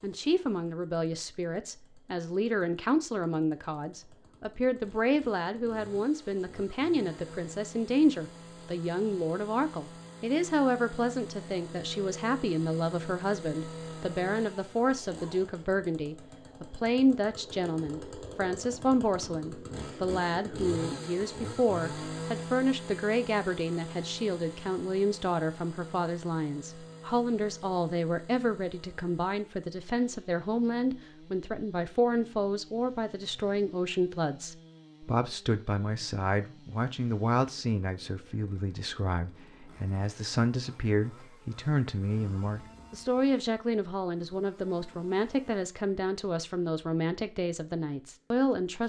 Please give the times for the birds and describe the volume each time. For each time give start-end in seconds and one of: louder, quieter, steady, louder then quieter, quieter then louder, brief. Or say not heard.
not heard.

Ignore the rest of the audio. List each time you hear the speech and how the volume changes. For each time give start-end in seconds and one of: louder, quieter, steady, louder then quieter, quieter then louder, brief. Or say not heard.
0.0-48.8 steady.